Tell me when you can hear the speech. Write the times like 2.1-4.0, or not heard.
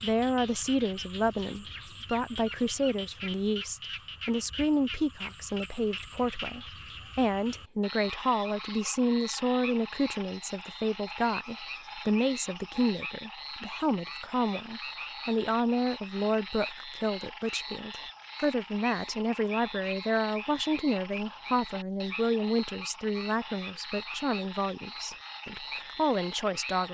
0.0-26.8.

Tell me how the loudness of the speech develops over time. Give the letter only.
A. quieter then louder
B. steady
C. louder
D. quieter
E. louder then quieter
B.